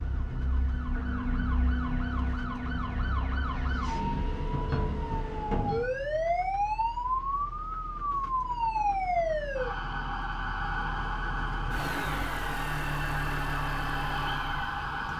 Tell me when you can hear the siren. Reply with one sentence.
You can hear the siren from 0.0 to 15.1 s.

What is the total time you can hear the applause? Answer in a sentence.
You can't hear the applause here.